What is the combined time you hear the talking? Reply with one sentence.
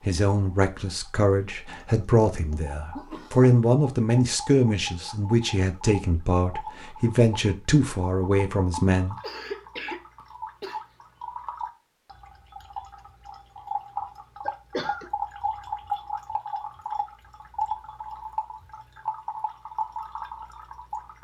The talking can be heard for 9 seconds in total.